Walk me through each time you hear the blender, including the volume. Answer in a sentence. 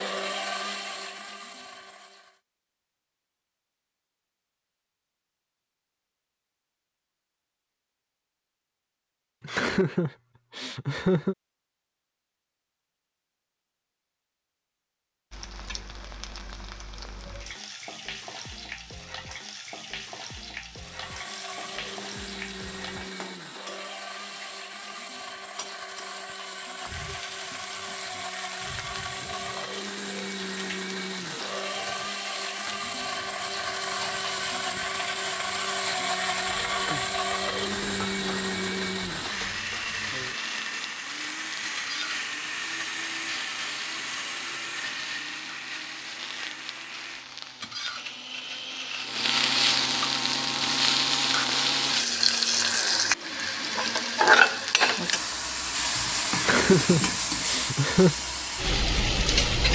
You can hear the blender briefly from 0.0 to 2.4 s; and from 20.8 to 54.3 s, getting louder then quieter.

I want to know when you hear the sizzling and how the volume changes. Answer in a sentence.
The sizzling can be heard from 15.3 to 59.7 s, getting louder.